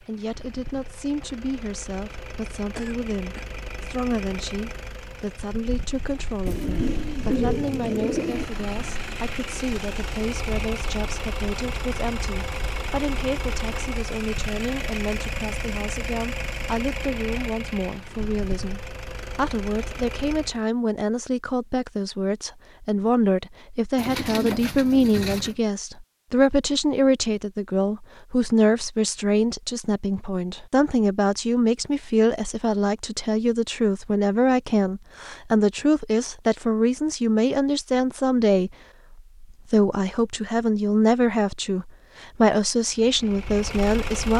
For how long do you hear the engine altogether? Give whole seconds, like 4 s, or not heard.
22 s.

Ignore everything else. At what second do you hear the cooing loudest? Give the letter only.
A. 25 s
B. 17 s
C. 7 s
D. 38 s
C.